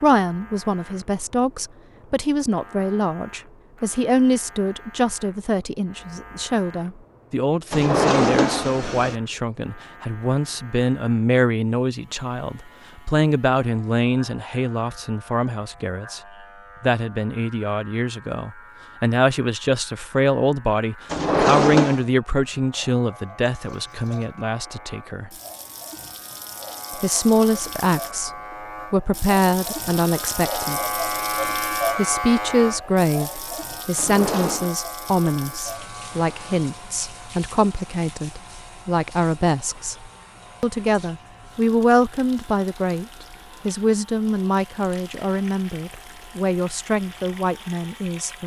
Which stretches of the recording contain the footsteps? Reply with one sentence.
You can't hear the footsteps here.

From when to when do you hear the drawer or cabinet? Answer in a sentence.
You can hear the drawer or cabinet from 7.7 to 9.2 s, from 21.1 to 22.1 s and from 34.0 to 34.7 s.